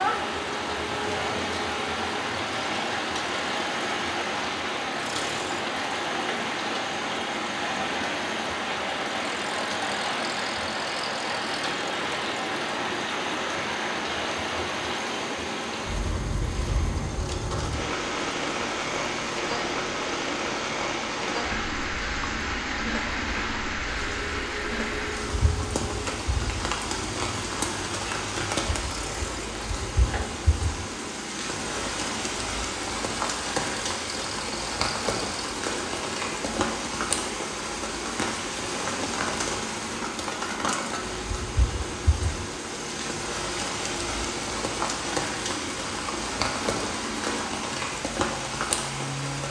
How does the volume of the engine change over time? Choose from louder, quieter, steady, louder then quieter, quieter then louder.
steady.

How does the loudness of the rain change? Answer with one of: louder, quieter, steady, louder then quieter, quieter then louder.
steady.